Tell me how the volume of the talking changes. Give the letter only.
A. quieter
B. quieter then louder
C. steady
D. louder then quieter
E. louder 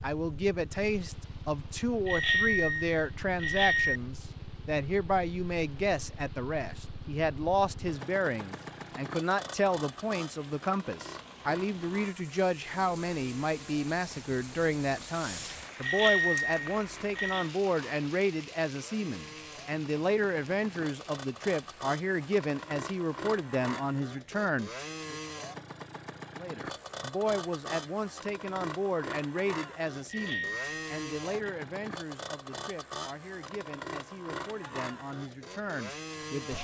A.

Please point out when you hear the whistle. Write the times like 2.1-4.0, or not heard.
not heard.